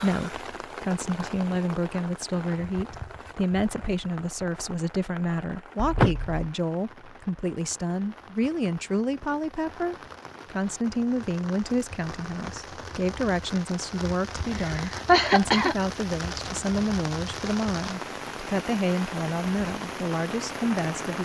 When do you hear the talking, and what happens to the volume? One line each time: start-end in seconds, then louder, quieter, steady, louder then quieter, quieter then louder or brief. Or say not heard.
0.0-21.1 steady.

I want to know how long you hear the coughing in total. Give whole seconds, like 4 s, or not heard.
2 s.